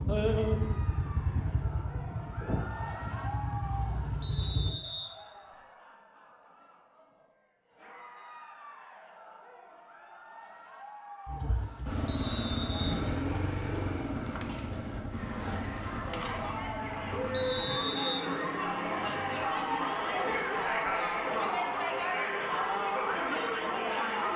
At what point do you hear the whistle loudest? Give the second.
18 s.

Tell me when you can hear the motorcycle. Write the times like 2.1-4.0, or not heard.
0.0-4.8, 11.2-19.9.